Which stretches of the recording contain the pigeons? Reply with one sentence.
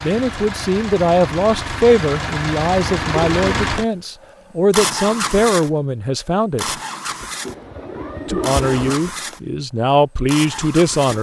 You can hear the pigeons from 2.9 to 3.8 s and from 7.5 to 9.0 s.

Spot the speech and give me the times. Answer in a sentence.
You can hear the speech from 0.0 to 6.8 s and from 8.2 to 11.1 s.